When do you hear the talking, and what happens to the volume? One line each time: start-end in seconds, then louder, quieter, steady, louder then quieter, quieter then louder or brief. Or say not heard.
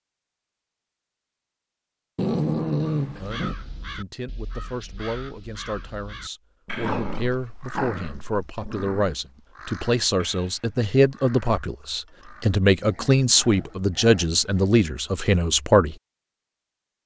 3.2-15.9 louder.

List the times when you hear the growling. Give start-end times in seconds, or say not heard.
2.1-3.5, 6.7-9.1, 12.3-14.8.